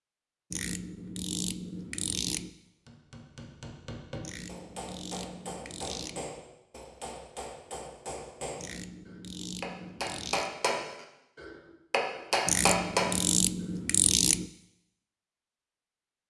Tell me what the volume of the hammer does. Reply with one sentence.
The volume of the hammer goes up.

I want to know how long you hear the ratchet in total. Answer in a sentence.
You can hear the ratchet for 8 seconds altogether.